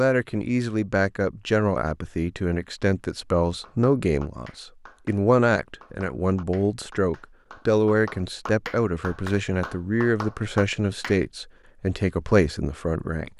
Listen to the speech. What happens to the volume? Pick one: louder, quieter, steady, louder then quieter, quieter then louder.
steady.